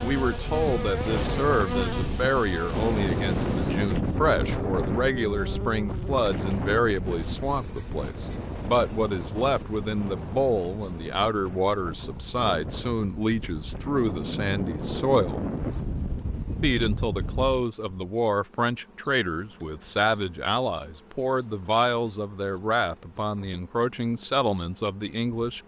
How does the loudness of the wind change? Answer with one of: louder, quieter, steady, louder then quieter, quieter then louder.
quieter then louder.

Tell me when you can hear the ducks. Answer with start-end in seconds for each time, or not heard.
not heard.